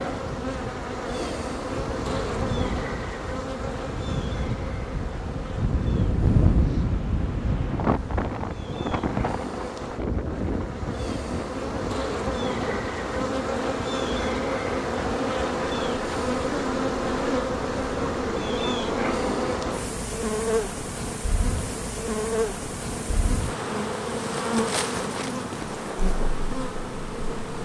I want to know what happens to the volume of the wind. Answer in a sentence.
The volume of the wind goes up, then down.